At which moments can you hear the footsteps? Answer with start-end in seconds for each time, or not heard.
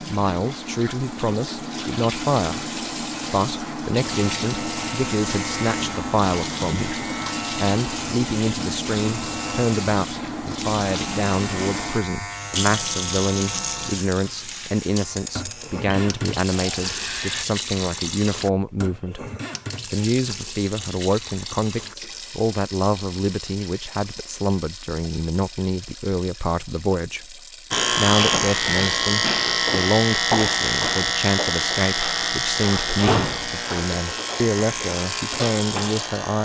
not heard.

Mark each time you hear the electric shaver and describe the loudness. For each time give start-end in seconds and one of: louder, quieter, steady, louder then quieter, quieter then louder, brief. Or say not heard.
4.0-17.4 steady
27.7-36.3 quieter.